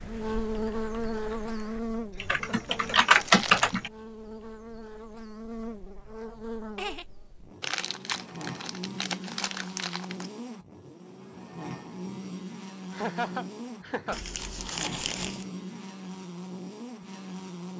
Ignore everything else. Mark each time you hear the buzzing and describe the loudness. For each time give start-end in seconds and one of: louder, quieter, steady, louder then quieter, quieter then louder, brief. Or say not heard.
0.0-17.7 quieter.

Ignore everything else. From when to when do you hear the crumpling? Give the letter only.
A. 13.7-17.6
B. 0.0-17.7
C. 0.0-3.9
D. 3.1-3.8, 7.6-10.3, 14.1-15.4
D.